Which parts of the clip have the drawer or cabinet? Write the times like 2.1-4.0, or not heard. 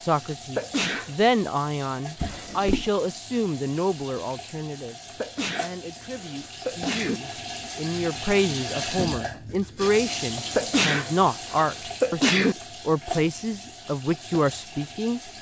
2.1-2.9.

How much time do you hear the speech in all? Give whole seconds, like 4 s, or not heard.
15 s.